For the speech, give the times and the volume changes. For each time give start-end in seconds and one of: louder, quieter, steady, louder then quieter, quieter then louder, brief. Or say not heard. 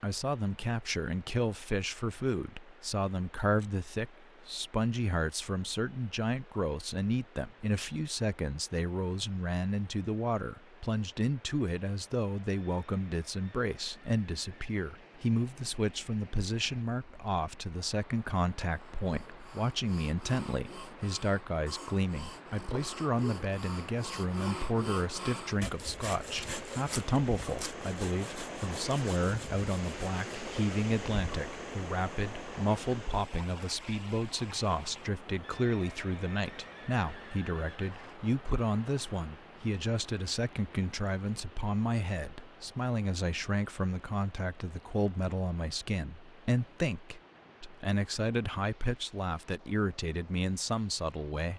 0.0-51.5 steady.